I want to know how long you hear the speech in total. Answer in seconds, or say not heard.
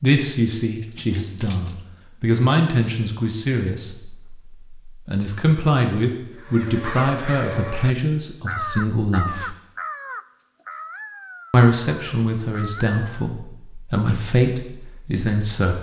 14 s.